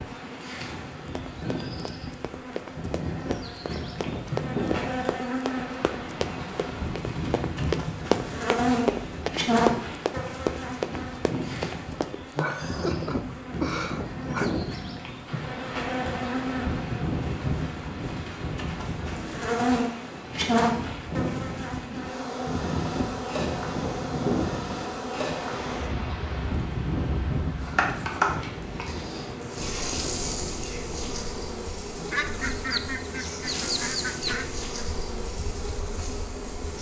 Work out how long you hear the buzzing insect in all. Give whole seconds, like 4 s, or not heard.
37 s.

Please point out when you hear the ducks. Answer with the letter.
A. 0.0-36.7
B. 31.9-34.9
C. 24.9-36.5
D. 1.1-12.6
B.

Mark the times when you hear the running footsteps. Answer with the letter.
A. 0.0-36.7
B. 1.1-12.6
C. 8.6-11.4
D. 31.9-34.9
B.